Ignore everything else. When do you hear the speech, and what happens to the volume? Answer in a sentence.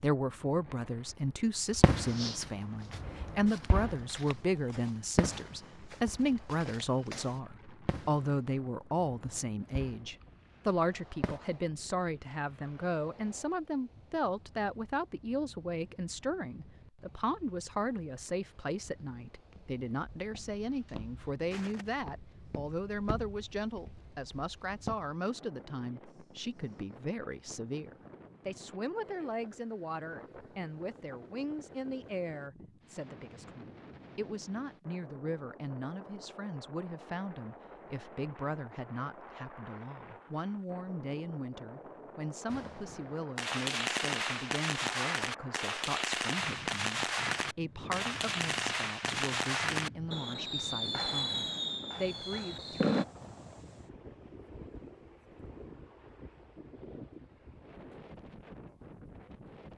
You can hear the speech from 0.0 to 53.0 s, getting quieter.